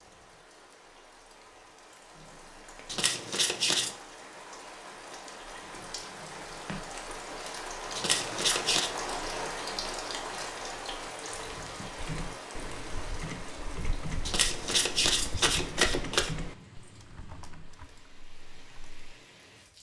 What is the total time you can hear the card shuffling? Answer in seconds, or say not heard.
4 s.